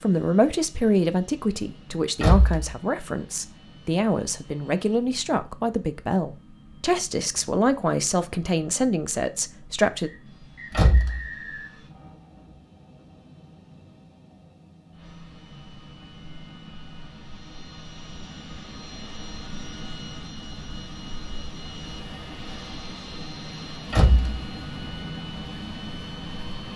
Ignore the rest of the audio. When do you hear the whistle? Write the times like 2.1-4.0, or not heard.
10.1-11.8.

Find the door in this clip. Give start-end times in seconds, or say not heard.
2.2-2.8, 10.7-11.2, 23.9-24.3.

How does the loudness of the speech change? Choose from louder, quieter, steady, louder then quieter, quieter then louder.
steady.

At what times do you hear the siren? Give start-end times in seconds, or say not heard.
not heard.